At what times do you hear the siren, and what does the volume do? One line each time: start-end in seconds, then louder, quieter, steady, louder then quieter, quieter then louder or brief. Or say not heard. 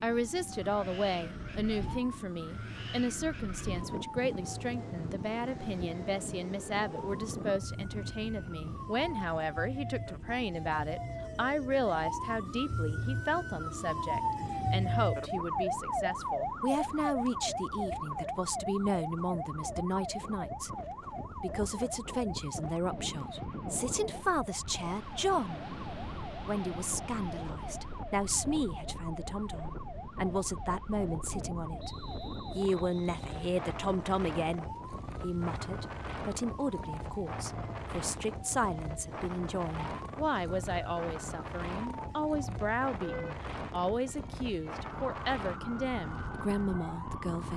0.0-47.5 louder then quieter.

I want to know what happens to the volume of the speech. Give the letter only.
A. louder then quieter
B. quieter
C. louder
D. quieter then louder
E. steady
E.